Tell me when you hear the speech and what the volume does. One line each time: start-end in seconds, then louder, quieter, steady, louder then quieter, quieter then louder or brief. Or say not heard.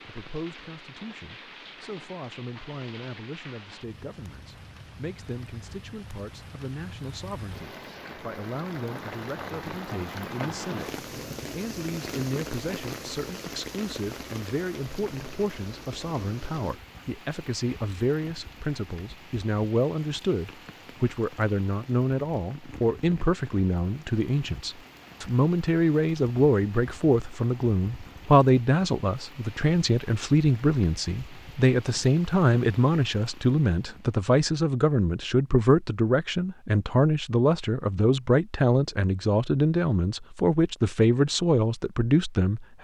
0.1-42.8 louder.